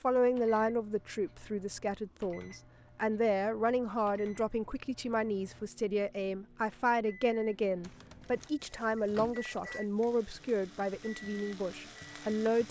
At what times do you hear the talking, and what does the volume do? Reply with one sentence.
The talking can be heard from 0.0 to 12.6 s, at a steady volume.